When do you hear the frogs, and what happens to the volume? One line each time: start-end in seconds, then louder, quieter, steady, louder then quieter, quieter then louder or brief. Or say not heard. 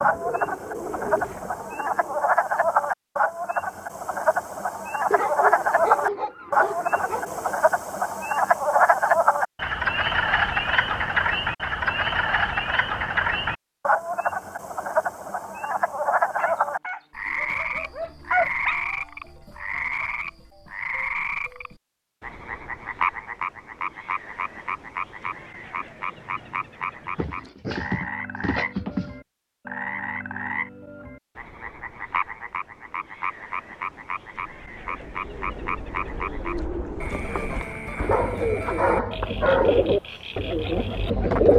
0.0-41.5 quieter.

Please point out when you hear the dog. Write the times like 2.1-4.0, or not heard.
5.1-7.5, 16.4-18.8, 27.1-29.1, 38.1-39.9.